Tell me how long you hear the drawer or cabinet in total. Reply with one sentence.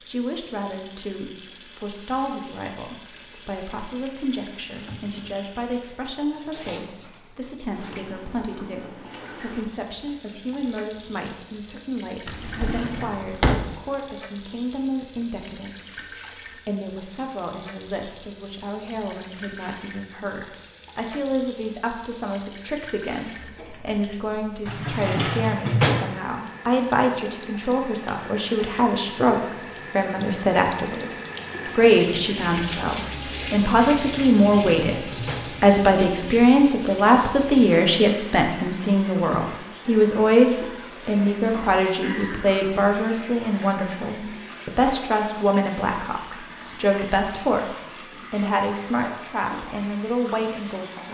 You can hear the drawer or cabinet for 4 seconds altogether.